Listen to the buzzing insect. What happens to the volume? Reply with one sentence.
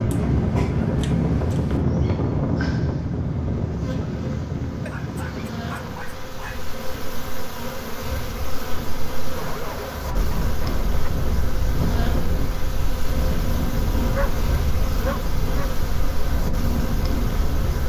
The volume of the buzzing insect goes up.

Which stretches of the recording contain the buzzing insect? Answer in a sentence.
You can hear the buzzing insect from 0.0 to 17.8 s.